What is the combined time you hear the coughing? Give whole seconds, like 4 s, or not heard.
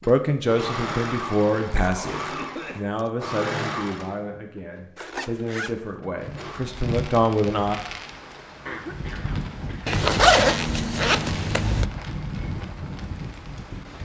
2 s.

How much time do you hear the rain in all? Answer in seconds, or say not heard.
8 s.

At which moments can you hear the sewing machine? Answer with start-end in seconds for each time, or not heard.
0.0-6.6.